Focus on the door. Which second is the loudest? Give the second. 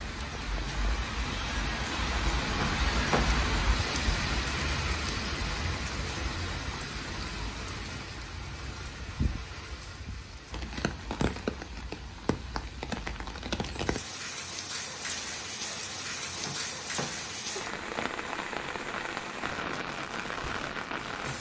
3 s.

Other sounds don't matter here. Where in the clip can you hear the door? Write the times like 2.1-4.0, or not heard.
2.5-3.4, 16.4-17.4.